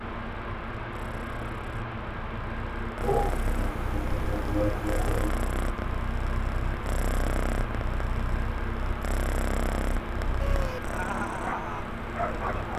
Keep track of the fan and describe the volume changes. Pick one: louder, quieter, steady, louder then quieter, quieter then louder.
steady.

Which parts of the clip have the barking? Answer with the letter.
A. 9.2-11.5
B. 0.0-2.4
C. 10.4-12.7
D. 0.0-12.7
C.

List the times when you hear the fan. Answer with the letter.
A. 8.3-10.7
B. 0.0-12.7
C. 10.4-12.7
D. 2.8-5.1
B.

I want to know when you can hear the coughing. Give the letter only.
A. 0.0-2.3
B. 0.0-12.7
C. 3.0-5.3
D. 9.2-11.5
C.